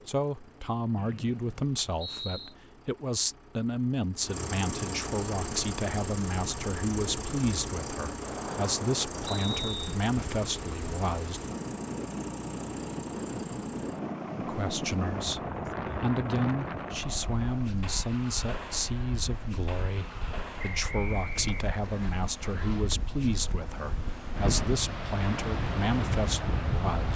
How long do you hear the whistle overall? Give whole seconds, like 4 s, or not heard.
4 s.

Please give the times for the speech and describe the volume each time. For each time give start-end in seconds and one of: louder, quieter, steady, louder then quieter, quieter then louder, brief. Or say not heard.
0.1-11.4 steady
14.3-27.1 steady.